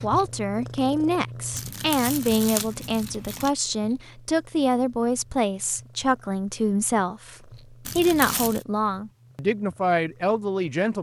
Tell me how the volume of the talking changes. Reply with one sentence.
The volume of the talking stays about the same.